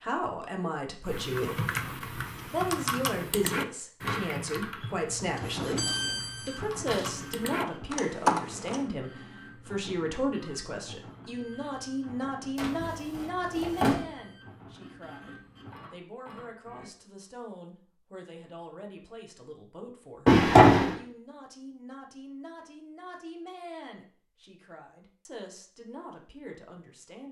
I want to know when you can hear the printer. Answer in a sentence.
The printer can be heard from 5.0 to 16.9 s.